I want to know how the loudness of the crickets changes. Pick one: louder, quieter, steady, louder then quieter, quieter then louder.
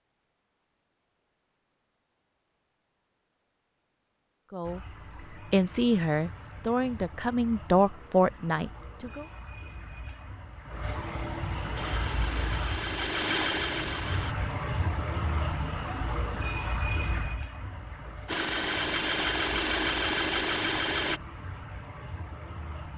louder then quieter.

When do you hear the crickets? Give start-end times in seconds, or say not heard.
4.6-22.9.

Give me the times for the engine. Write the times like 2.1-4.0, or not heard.
11.8-14.3, 18.2-21.2.